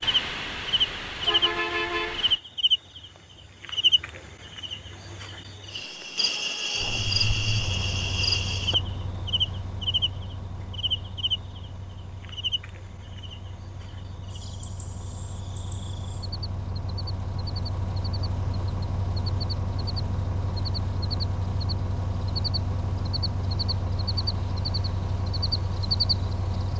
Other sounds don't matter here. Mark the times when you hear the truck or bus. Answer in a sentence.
You can hear the truck or bus from 0.0 to 2.4 s and from 6.8 to 26.7 s.